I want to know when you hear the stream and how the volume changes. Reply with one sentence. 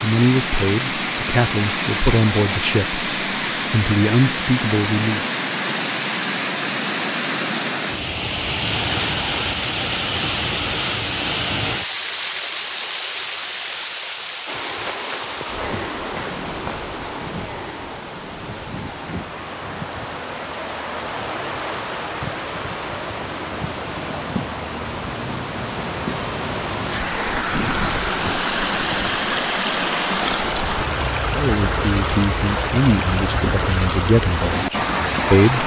You can hear the stream from 0.0 to 35.6 s, getting quieter then louder.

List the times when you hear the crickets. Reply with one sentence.
The crickets can be heard from 14.4 to 35.4 s.